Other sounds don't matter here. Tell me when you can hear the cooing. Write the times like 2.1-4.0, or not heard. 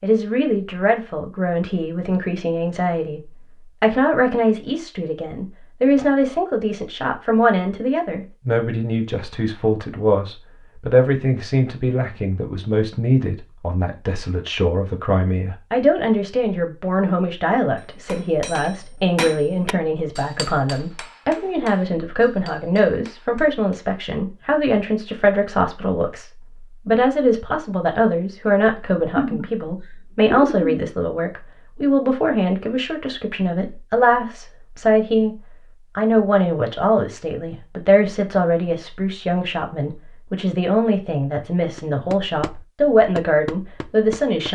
29.1-30.9.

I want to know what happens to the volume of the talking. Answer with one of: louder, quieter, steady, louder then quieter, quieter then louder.
steady.